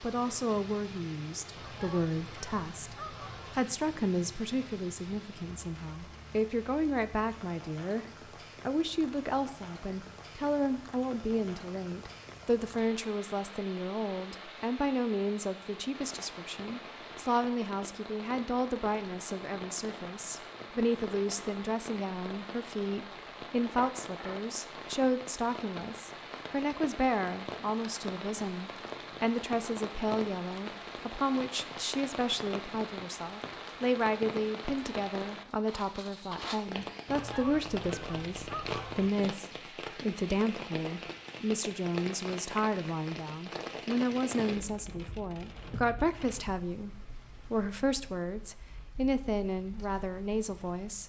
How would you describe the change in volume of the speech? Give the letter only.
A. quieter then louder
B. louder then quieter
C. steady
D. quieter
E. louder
C.